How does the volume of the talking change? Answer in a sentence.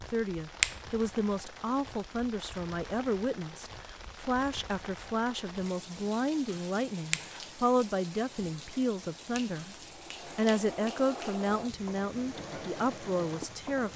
The volume of the talking stays about the same.